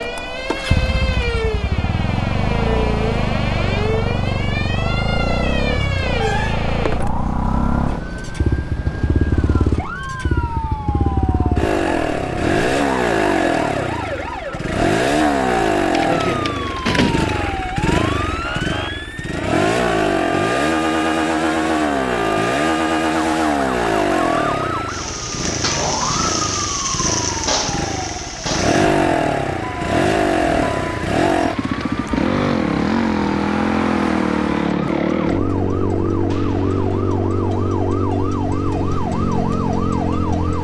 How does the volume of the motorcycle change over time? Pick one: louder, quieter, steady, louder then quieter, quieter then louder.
steady.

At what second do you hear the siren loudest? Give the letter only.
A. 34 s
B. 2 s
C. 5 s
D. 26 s
D.